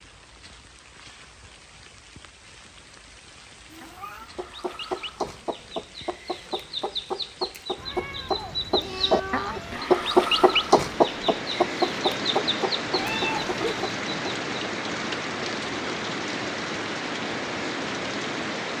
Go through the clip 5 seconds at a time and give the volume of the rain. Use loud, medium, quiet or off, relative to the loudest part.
quiet, quiet, loud, loud.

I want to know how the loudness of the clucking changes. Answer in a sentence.
The volume of the clucking goes up, then down.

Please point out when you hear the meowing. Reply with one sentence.
The meowing can be heard from 3.7 to 4.3 s, from 7.8 to 9.8 s and from 12.9 to 13.9 s.